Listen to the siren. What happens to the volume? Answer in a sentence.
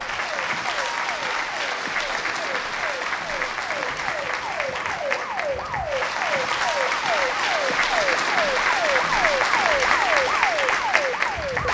The loudness of the siren goes up.